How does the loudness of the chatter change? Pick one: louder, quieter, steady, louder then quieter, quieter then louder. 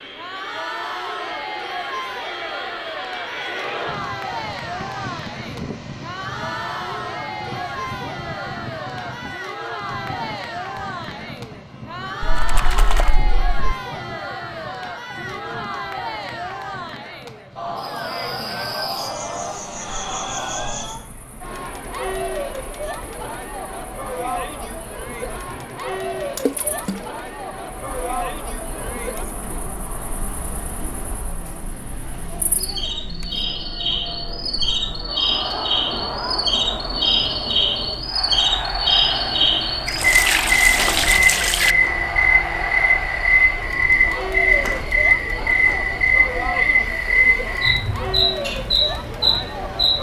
steady.